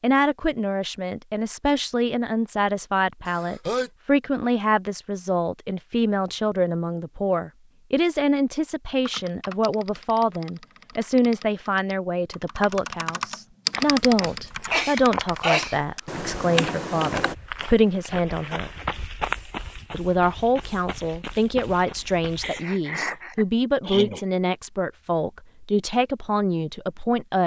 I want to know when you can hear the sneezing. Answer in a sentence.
You can hear the sneezing from 3.2 to 3.9 s, from 14.2 to 15.8 s and from 22.4 to 24.2 s.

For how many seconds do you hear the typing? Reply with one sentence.
The typing can be heard for 8 seconds in total.